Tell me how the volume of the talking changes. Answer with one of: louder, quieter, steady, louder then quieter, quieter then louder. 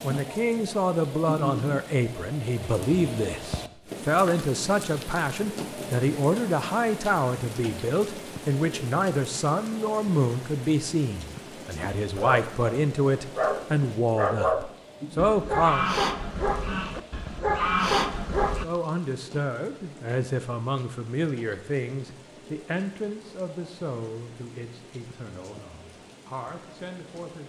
quieter.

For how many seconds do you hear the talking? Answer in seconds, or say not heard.
25 s.